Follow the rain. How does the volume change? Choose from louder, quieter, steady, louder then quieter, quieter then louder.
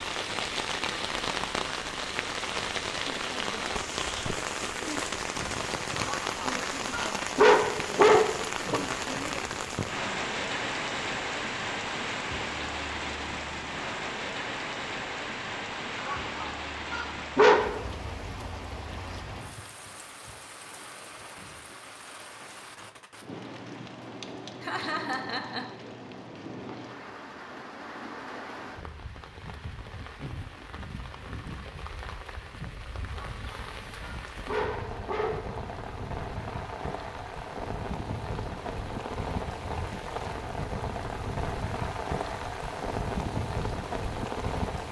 quieter then louder.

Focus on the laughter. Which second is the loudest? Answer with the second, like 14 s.
25 s.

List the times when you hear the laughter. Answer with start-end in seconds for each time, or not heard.
8.6-10.2, 24.6-25.8.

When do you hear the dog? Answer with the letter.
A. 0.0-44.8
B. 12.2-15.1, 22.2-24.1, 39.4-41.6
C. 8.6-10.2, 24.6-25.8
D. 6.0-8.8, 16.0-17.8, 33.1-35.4
D.